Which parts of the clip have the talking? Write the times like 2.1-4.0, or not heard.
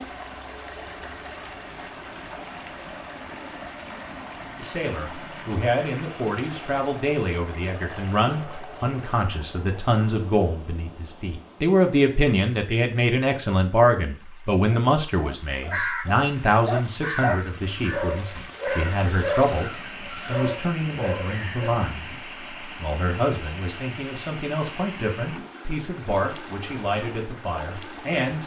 4.6-28.4.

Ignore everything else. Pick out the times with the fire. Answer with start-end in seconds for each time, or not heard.
not heard.